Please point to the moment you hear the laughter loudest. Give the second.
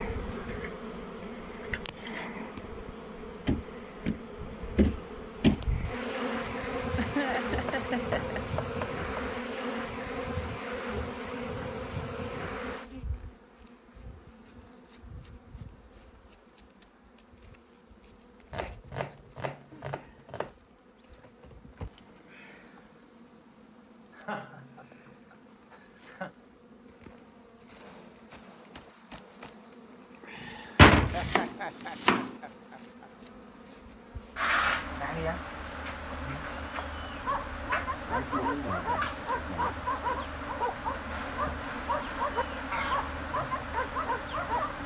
7 s.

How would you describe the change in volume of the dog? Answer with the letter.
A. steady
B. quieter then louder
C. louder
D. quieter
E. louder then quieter
A.